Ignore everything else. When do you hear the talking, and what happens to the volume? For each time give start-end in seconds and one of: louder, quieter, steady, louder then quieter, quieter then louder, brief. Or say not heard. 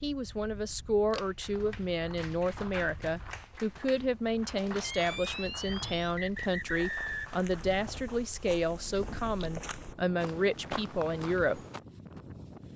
0.0-11.6 steady.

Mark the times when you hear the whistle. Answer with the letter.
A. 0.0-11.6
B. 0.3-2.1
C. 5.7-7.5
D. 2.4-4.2
C.